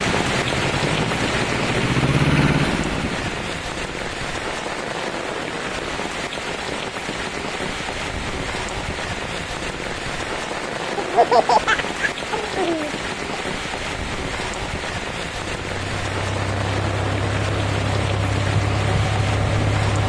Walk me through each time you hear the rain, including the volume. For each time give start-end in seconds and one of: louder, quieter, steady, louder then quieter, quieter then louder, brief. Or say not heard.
0.0-20.0 steady.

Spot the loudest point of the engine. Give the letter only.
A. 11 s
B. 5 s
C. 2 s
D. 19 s
C.